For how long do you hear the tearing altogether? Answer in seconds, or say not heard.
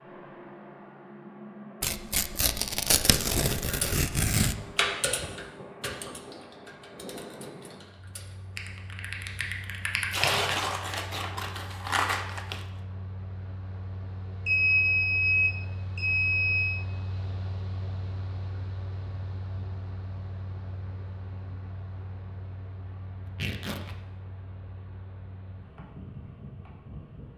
6 s.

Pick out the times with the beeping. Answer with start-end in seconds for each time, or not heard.
14.4-16.9.